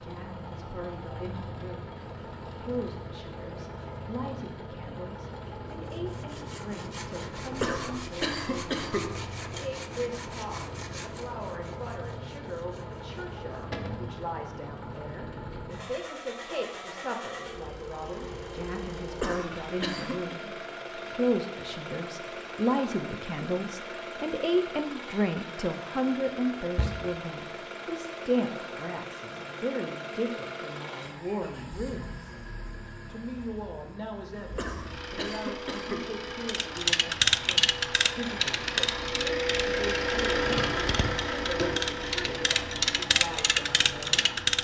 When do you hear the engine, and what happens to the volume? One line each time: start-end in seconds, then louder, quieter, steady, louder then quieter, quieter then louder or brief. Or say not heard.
0.0-44.5 louder.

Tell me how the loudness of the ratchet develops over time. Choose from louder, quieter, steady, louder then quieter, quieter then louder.
quieter then louder.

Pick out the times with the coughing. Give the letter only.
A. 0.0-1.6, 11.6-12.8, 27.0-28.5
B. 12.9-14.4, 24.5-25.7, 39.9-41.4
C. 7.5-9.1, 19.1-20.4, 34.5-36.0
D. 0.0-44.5
C.